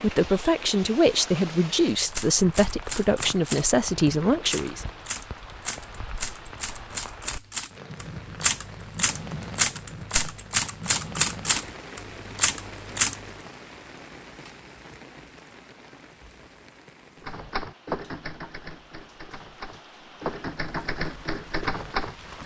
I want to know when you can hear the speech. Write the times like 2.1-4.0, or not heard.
0.0-4.8.